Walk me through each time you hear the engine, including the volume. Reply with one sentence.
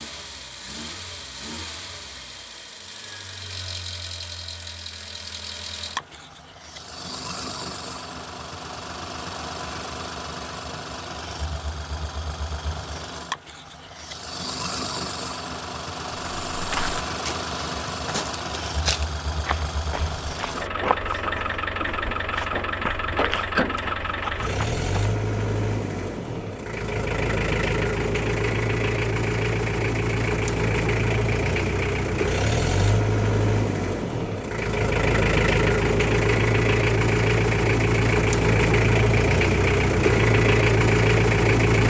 The engine can be heard from 0.0 to 41.8 s, getting louder.